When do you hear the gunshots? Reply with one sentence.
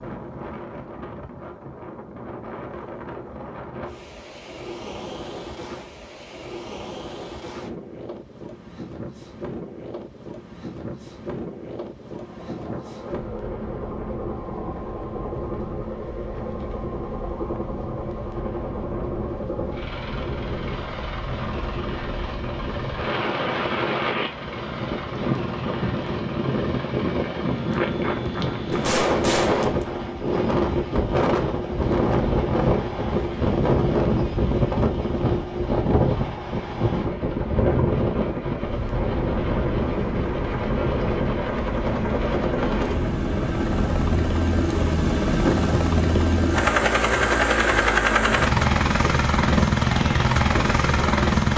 The gunshots can be heard from 28.7 to 30.1 s.